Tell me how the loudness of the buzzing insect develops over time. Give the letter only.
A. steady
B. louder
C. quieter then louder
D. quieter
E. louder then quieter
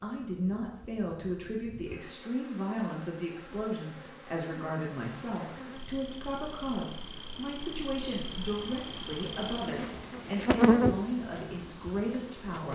B.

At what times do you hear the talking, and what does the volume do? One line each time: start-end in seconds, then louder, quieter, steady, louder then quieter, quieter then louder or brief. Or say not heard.
0.0-12.7 steady.